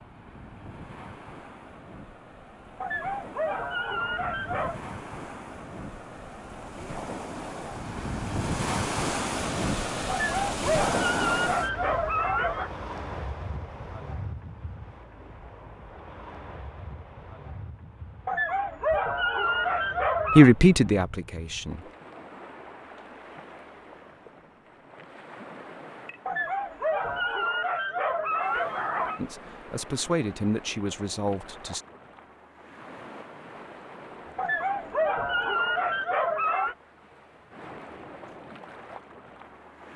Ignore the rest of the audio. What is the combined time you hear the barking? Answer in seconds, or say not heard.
12 s.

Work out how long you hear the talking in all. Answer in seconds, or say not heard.
4 s.